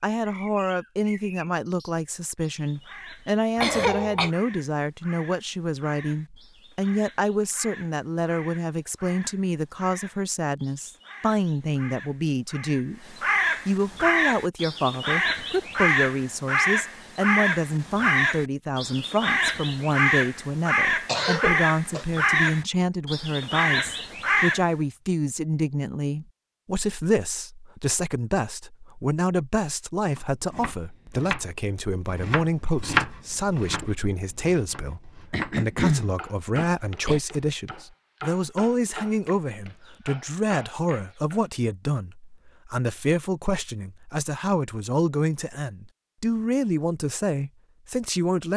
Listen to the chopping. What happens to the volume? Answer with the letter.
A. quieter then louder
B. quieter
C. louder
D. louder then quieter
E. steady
D.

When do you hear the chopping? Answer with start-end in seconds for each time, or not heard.
30.1-41.5.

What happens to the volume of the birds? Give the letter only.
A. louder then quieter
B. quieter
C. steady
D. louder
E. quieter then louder
D.